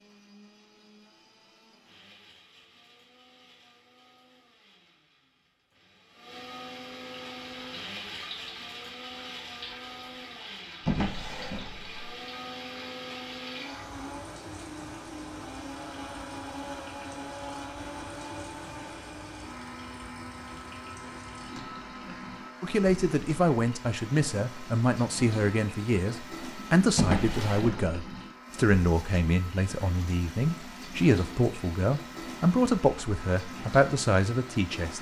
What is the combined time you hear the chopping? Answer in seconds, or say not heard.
not heard.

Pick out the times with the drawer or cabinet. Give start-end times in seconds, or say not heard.
10.8-11.9, 26.9-28.0.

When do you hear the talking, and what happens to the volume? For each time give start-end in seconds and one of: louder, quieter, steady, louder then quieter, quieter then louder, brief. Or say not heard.
22.6-34.9 steady.